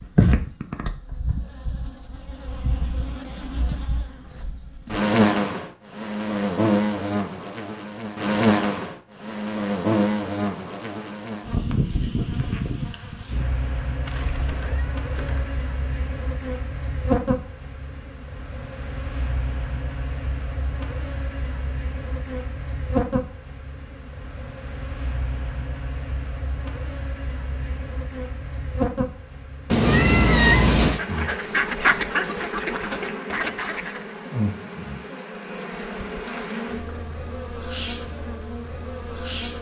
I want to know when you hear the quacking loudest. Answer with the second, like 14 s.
32 s.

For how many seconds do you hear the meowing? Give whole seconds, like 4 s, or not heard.
3 s.